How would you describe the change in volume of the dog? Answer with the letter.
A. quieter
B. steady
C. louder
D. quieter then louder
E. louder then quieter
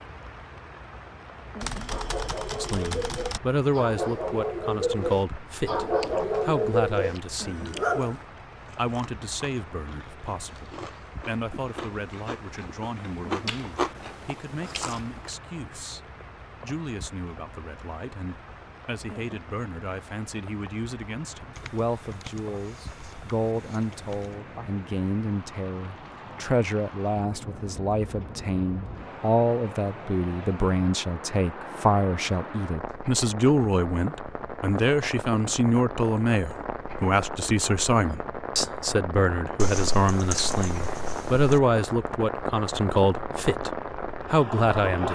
C.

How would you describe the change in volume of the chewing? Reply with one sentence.
The loudness of the chewing goes up, then down.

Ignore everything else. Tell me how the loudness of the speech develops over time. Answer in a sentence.
The loudness of the speech goes down, then up.